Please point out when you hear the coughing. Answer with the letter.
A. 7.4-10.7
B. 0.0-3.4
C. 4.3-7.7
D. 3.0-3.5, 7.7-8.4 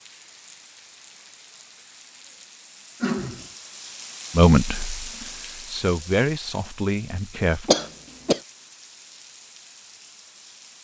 D.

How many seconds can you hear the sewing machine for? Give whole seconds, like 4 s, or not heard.
not heard.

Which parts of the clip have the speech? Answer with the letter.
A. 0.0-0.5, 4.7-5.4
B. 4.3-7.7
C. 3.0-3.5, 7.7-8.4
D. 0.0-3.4
B.